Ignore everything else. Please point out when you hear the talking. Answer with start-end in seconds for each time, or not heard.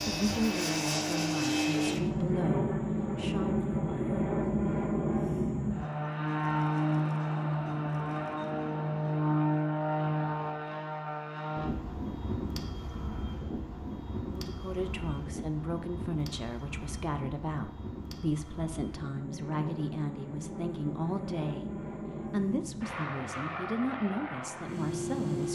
0.1-3.6, 14.3-25.5.